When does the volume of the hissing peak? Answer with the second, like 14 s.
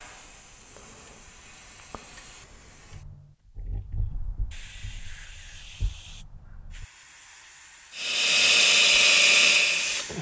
10 s.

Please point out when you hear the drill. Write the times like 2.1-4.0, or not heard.
8.0-10.1.